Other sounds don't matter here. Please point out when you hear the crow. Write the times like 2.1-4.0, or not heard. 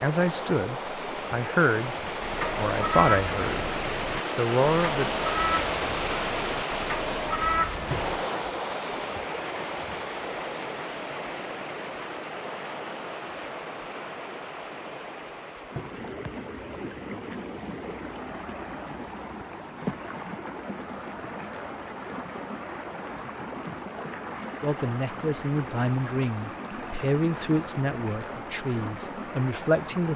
2.2-8.2.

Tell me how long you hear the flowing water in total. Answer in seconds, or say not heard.
30 s.